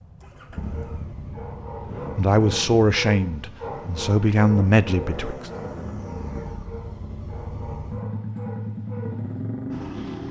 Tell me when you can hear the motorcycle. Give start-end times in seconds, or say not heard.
0.0-10.2.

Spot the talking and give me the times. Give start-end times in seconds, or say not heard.
2.1-5.5.